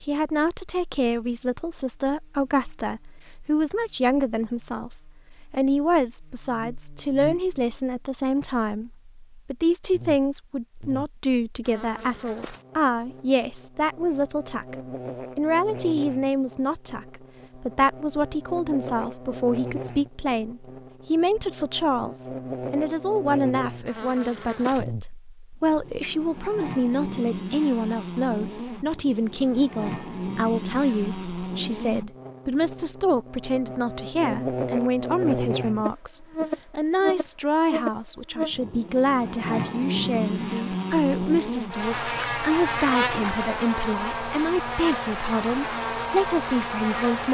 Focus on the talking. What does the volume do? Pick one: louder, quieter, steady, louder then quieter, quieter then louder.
steady.